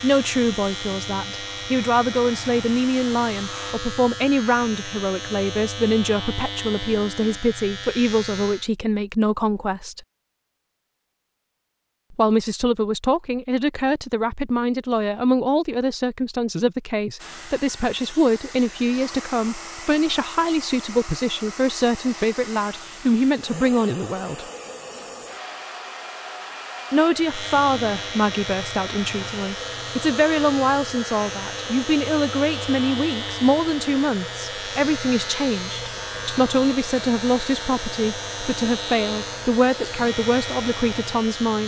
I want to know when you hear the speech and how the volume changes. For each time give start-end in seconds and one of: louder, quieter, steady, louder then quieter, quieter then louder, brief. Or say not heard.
0.0-10.0 steady
12.1-24.4 steady
26.9-41.6 steady.